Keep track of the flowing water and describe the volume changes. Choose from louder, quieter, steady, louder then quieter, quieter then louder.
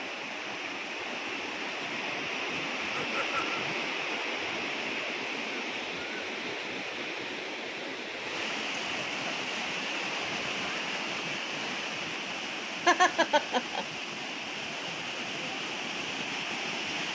steady.